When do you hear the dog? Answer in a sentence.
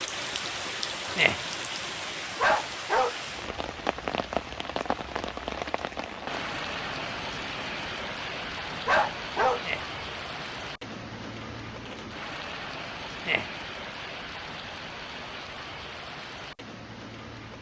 You can hear the dog from 2.4 to 3.1 s and from 8.8 to 9.6 s.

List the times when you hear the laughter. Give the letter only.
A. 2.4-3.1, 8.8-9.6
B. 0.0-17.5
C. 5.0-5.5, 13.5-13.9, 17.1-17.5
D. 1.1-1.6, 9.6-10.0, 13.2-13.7
D.